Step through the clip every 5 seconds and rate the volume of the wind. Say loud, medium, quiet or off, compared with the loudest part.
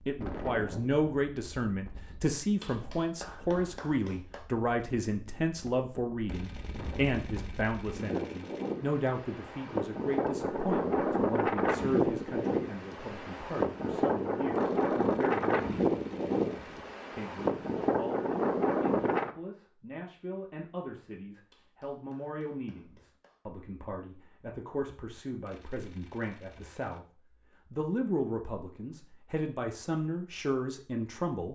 quiet, medium, loud, loud, off, off, off.